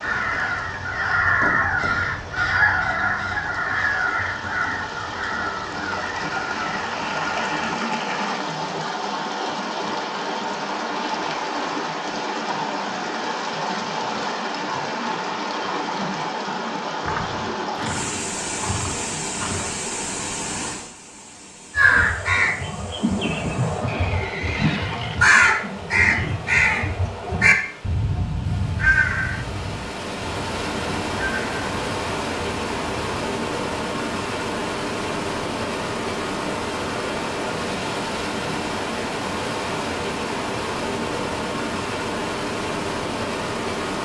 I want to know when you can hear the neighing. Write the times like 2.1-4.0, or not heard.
17.8-19.8, 23.9-25.4.